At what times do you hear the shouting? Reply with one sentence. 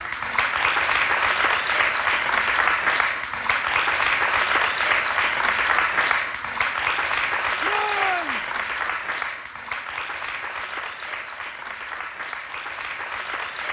You can hear the shouting from 7.6 to 8.4 s.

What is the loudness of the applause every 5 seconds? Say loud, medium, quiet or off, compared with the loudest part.
loud, loud, medium.